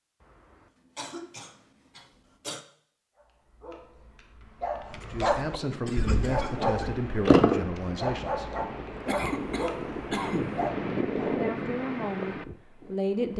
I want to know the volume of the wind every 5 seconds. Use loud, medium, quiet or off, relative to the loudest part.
off, medium, loud.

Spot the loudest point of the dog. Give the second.
7 s.